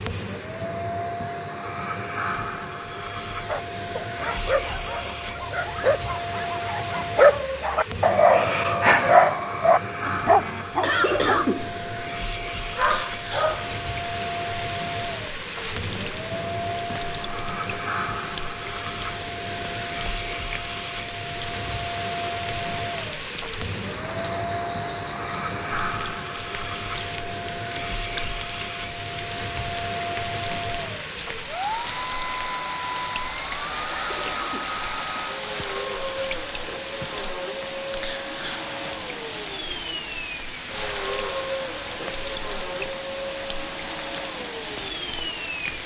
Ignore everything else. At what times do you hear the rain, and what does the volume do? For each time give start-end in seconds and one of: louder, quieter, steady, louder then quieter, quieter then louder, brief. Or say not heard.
12.7-45.8 steady.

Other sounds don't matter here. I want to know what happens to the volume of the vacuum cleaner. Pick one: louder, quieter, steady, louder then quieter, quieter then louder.
steady.